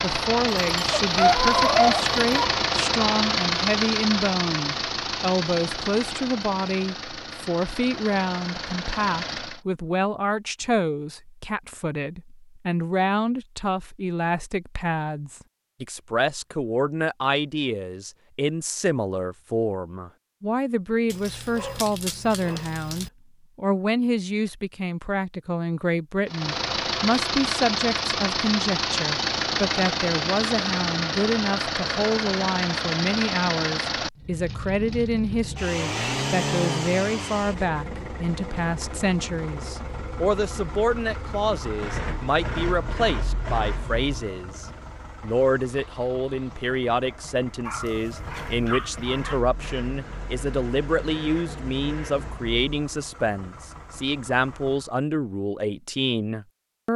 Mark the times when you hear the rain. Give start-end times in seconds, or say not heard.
not heard.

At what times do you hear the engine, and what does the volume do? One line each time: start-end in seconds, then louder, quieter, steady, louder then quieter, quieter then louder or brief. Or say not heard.
0.0-9.6 quieter
26.2-55.0 quieter.